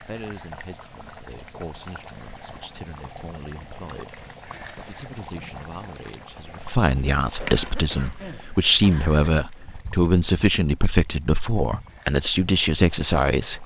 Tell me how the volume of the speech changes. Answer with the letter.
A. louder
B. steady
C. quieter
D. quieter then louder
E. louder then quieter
A.